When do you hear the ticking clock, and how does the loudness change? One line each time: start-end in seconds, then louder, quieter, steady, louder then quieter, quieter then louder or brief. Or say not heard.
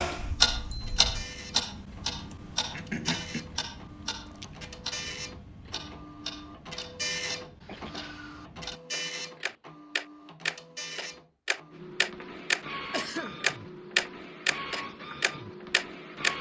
0.0-16.3 quieter then louder.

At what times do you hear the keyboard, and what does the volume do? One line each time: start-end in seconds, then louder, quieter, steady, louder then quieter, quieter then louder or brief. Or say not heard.
not heard.